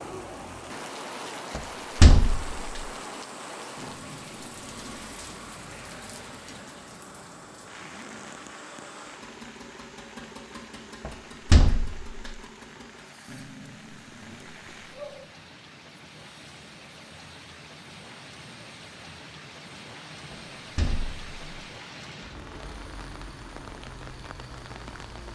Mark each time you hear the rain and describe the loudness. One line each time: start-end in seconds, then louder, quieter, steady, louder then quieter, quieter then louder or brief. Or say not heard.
0.0-25.3 quieter then louder.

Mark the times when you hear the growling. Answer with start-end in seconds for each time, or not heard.
3.8-5.0, 13.2-15.3.